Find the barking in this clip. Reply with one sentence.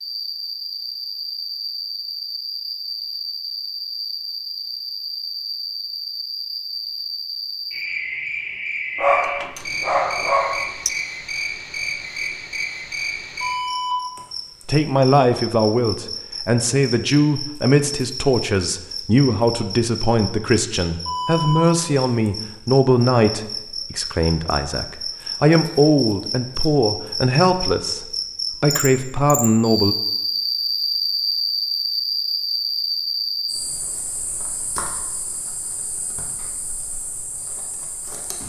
You can hear the barking from 8.9 to 10.9 s.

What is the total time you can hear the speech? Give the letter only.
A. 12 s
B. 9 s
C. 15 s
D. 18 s
C.